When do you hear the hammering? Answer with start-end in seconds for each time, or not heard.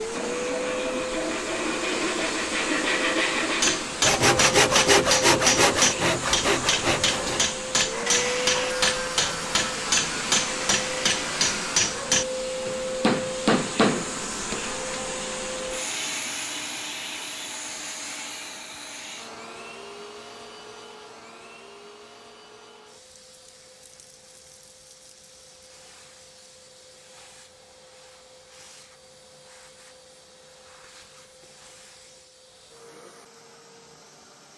3.6-14.6.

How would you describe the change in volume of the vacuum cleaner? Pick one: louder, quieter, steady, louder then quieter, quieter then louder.
quieter.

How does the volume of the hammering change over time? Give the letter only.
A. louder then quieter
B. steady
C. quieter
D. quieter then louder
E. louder
B.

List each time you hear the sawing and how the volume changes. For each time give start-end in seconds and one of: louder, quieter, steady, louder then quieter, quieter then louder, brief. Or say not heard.
0.1-11.8 louder then quieter.